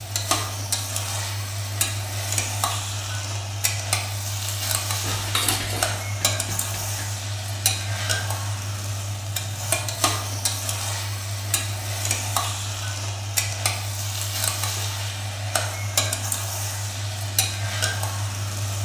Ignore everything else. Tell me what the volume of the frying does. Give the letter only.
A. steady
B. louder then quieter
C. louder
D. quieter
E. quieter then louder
A.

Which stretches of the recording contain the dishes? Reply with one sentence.
The dishes can be heard from 5.0 to 7.0 s.